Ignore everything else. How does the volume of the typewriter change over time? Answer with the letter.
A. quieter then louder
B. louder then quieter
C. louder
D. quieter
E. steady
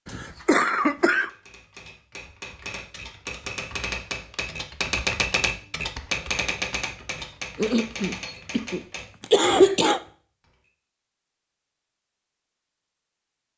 B.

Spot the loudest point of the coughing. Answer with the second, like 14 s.
9 s.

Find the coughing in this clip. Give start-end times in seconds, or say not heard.
0.1-1.3, 7.5-10.0.